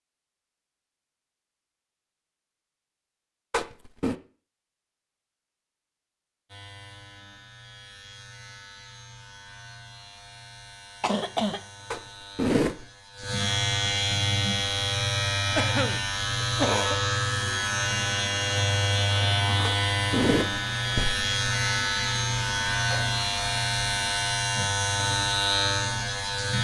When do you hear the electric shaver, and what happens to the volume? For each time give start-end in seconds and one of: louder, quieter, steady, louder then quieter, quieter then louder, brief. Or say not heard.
6.5-26.5 louder.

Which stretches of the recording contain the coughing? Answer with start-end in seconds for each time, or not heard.
11.0-11.6, 15.6-17.0.